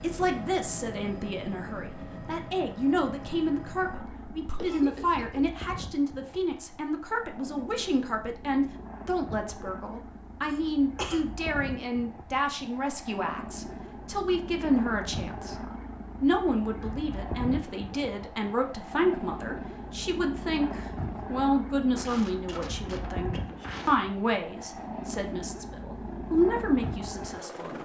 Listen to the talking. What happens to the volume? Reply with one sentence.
The loudness of the talking stays about the same.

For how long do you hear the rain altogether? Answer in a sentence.
The rain can't be heard in this clip.